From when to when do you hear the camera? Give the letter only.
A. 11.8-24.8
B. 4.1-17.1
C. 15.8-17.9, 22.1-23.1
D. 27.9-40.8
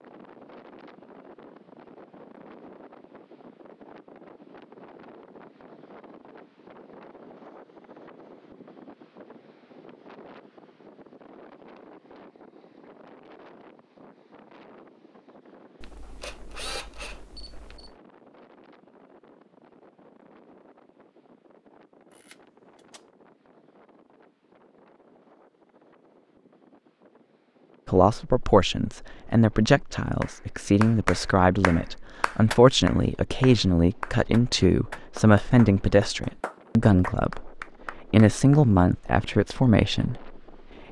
C.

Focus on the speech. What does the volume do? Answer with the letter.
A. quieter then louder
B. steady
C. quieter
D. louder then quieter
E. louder
B.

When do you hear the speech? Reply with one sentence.
The speech can be heard from 27.9 to 40.8 s.